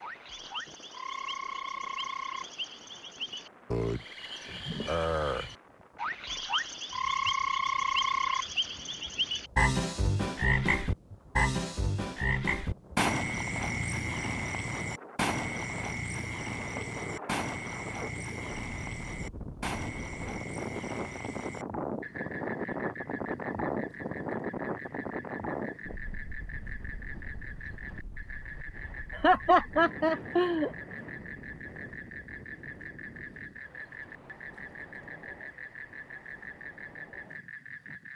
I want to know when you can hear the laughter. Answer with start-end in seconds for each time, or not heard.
29.1-30.7.